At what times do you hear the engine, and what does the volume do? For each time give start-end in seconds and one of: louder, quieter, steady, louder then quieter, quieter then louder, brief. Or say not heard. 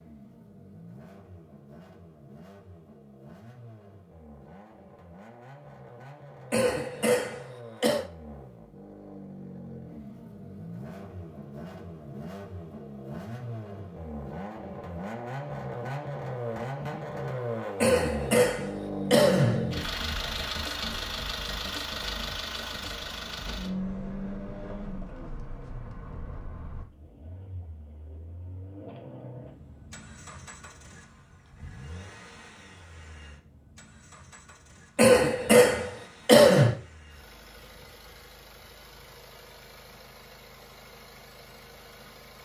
0.0-42.4 louder then quieter.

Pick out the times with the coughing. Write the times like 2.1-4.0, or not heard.
6.5-8.1, 17.8-19.8, 35.0-36.8.